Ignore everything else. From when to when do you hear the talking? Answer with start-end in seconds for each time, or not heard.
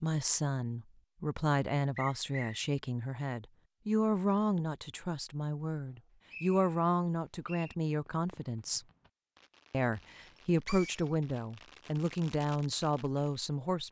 0.0-8.8, 9.7-13.8.